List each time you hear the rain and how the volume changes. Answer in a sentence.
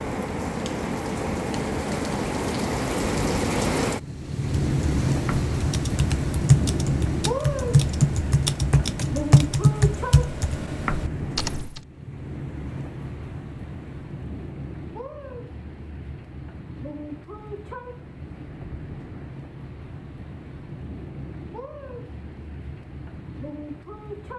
The rain can be heard from 0.0 to 24.3 s, getting quieter.